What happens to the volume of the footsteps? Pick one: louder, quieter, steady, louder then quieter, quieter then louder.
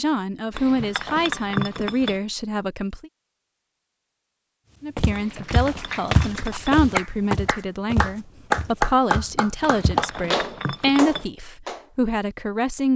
louder then quieter.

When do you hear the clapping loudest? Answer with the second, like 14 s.
9 s.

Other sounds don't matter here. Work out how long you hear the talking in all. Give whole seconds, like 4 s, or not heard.
11 s.